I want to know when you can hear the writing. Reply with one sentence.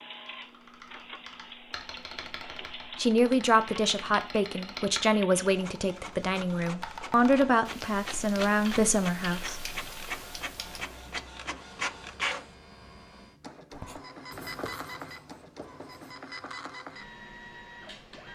You can hear the writing from 13.7 to 16.1 s.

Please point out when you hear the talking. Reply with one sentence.
The talking can be heard from 3.0 to 9.7 s.